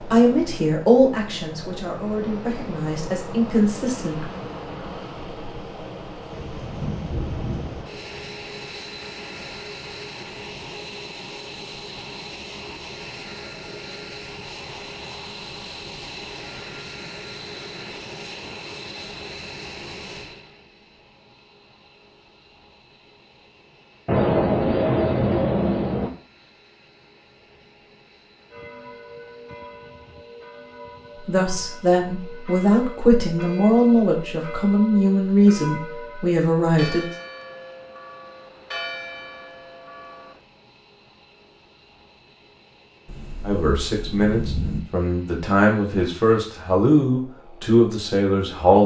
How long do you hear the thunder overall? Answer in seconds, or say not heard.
5 s.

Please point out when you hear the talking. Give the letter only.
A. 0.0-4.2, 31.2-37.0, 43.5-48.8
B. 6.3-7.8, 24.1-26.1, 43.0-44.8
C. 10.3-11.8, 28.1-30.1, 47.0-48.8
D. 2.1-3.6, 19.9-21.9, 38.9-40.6
A.